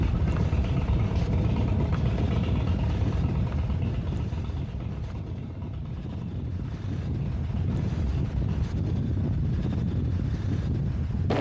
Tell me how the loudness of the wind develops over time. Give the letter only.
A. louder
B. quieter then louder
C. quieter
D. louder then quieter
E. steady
B.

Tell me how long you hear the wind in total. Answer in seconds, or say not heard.
11 s.